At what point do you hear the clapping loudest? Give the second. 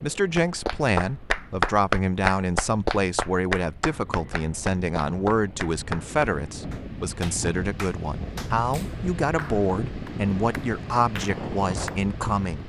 2 s.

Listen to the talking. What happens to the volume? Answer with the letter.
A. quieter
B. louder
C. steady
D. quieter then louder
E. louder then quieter
C.